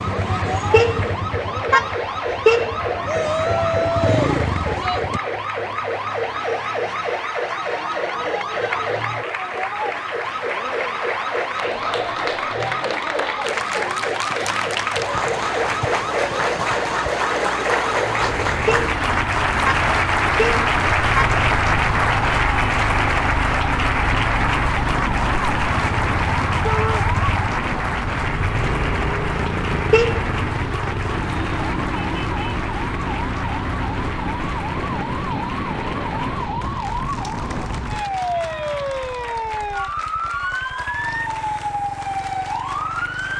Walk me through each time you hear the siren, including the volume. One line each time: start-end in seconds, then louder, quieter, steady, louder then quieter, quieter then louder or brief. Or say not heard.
0.0-43.3 steady.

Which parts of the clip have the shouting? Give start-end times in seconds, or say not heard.
3.0-5.0, 26.6-27.1.